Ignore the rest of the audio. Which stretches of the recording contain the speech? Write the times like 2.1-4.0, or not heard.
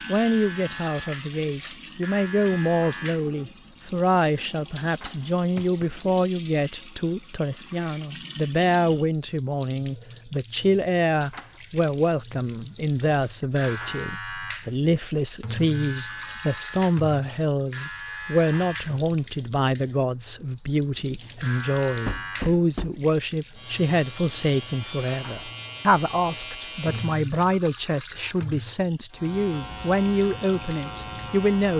0.1-31.7.